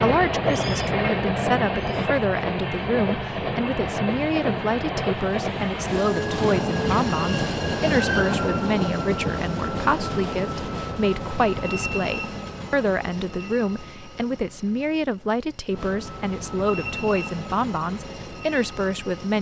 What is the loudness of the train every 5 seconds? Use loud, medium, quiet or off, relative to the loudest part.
loud, loud, medium, medium.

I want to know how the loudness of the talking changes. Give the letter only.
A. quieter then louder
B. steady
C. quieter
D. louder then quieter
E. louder
B.